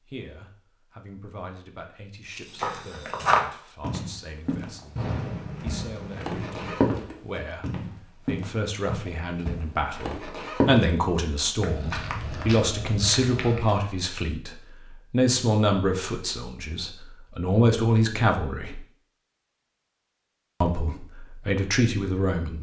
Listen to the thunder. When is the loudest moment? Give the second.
5 s.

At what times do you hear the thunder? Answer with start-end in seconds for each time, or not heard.
5.0-6.8.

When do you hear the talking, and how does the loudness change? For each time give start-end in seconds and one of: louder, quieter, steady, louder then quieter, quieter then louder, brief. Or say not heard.
0.0-18.8 louder
20.6-22.5 brief.